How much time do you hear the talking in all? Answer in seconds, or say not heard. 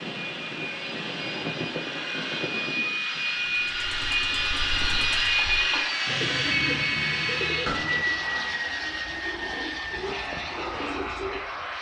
not heard.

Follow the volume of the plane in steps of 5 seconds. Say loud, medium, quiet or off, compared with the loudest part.
loud, loud, medium.